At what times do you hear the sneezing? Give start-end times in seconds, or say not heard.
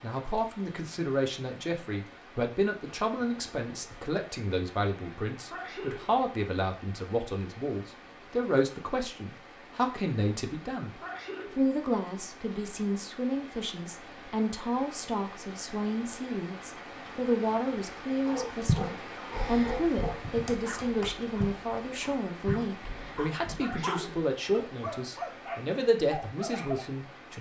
5.5-6.2, 11.0-11.7, 23.6-24.2.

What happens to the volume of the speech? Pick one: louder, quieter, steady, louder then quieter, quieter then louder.
steady.